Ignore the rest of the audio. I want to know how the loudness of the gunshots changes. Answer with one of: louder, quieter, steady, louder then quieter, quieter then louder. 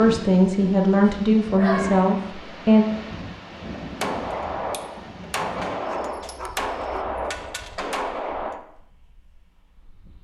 steady.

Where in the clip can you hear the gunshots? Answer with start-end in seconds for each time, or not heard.
4.0-8.6.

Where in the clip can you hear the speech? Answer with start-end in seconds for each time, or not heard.
0.0-2.9.